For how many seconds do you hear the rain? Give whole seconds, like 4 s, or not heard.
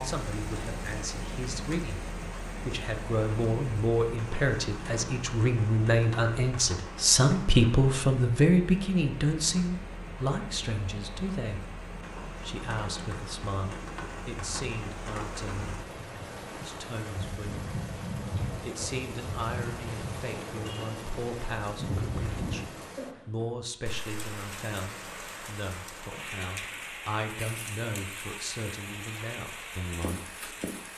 31 s.